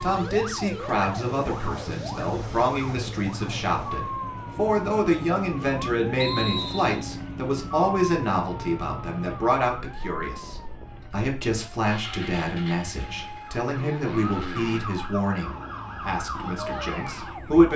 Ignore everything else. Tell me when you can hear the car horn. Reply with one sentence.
The car horn can't be heard in this clip.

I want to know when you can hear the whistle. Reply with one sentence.
You can hear the whistle from 6.2 to 7.0 s.